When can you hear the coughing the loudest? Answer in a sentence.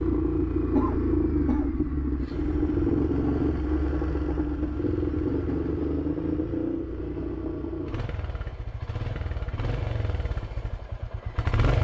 The loudest moment of the coughing is at 1 second.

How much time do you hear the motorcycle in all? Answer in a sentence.
You can hear the motorcycle for 12 seconds altogether.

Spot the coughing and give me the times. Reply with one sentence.
The coughing can be heard from 0.7 to 2.4 s.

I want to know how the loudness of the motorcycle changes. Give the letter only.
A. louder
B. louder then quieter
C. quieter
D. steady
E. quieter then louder
C.